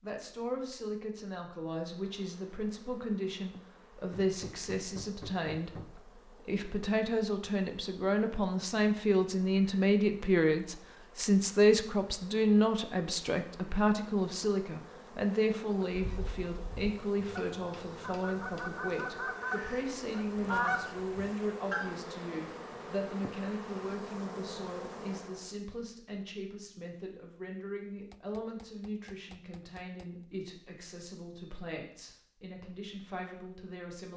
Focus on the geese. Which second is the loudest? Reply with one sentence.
The volume of the geese peaks at 21 seconds.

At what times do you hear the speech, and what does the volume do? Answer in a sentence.
You can hear the speech from 0.0 to 34.1 s, getting louder then quieter.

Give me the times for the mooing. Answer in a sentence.
The mooing can't be heard in this clip.